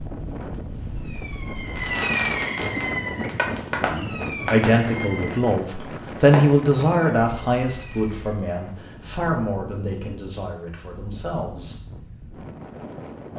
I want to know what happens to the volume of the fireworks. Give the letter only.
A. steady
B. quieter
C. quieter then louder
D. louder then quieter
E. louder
B.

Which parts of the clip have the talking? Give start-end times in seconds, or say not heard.
3.8-11.8.